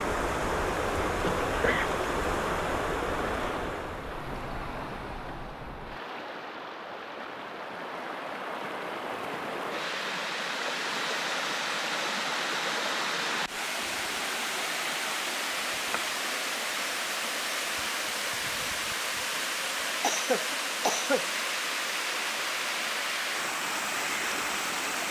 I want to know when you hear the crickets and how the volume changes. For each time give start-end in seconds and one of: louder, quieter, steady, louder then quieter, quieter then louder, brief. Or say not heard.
not heard.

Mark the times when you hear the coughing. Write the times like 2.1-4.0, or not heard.
1.2-1.9, 20.0-21.2.